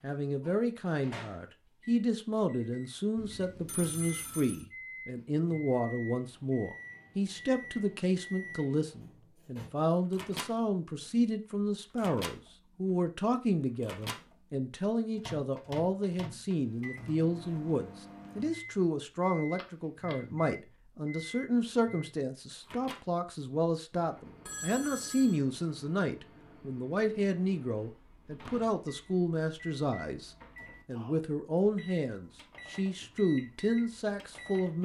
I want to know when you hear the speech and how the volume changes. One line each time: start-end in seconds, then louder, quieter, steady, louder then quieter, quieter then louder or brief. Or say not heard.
0.0-34.8 steady.